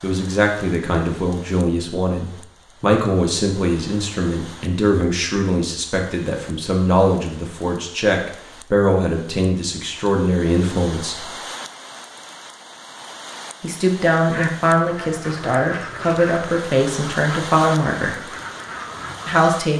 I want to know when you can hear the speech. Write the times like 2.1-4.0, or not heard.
0.0-11.3, 13.6-18.2, 19.2-19.7.